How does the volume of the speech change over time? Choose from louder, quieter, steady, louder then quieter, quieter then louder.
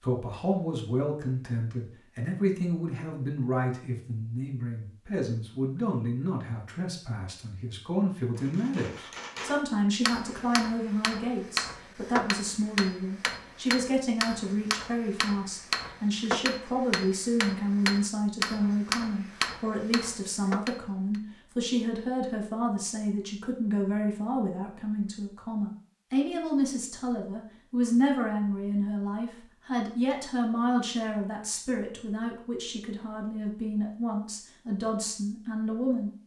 steady.